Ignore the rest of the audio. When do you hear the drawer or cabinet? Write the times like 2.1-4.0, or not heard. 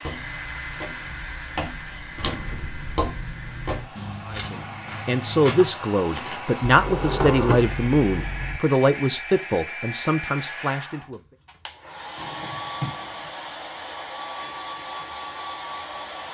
2.1-3.0, 6.7-8.6, 12.2-13.3.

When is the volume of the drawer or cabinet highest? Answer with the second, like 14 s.
7 s.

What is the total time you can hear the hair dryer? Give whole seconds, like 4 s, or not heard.
16 s.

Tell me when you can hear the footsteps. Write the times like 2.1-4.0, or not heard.
0.0-6.4.